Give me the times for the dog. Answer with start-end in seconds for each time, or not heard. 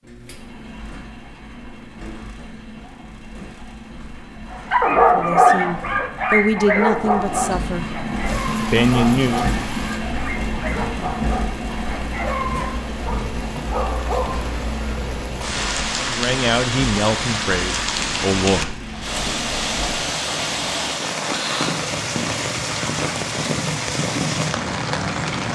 4.5-14.4.